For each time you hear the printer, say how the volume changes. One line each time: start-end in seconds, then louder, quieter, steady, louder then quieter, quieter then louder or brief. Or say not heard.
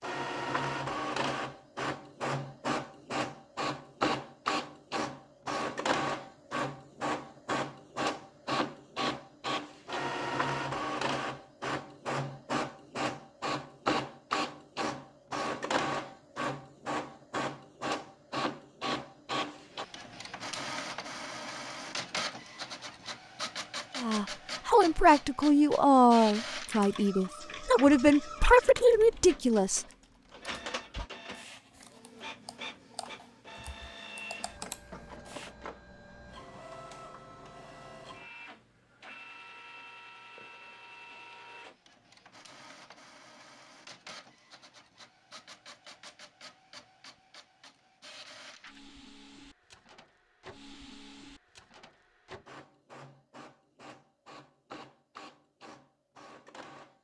0.0-56.9 quieter.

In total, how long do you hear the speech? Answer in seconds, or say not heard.
6 s.